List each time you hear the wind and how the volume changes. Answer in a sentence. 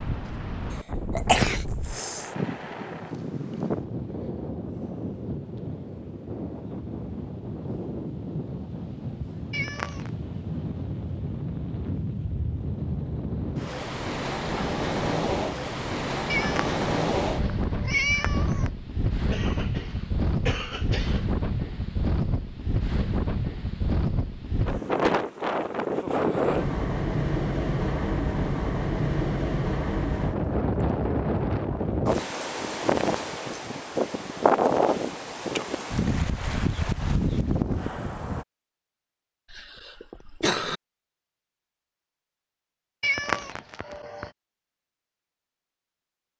You can hear the wind from 0.0 to 38.5 s, getting louder.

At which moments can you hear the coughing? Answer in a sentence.
The coughing can be heard from 1.1 to 2.3 s, from 19.3 to 21.2 s and from 39.5 to 40.8 s.